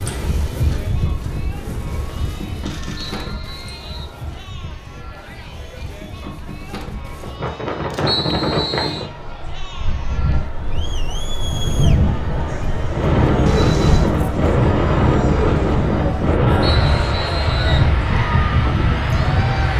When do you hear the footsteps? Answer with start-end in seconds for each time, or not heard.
not heard.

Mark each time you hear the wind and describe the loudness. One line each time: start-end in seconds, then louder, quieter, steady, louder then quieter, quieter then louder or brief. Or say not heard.
0.0-19.7 louder.